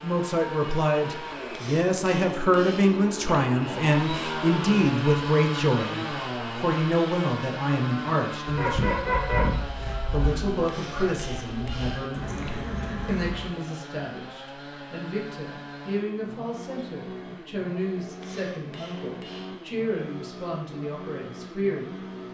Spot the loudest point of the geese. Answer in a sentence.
The loudest moment of the geese is at 9 seconds.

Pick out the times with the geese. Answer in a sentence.
The geese can be heard from 8.1 to 13.5 s.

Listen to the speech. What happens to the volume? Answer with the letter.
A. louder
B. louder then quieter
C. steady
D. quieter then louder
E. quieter
E.